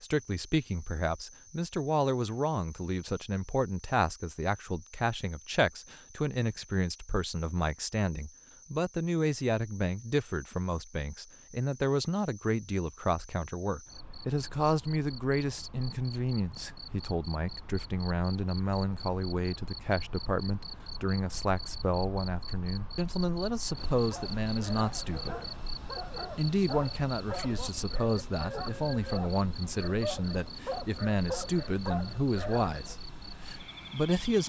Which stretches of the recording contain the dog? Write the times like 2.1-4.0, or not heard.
23.9-33.0.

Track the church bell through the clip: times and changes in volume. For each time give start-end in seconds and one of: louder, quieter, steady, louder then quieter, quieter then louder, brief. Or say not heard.
not heard.